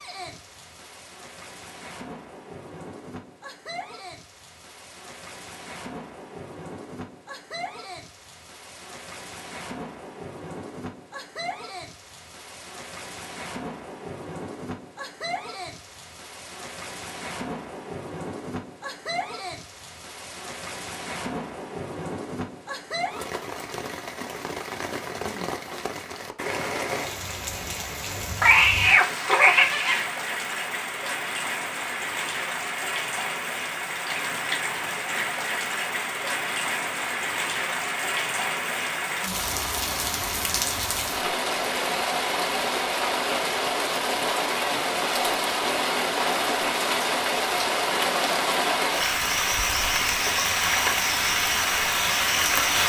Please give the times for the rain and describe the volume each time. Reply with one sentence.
You can hear the rain from 0.0 to 52.8 s, getting louder.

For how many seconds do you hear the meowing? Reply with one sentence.
The meowing can be heard for 2 seconds in total.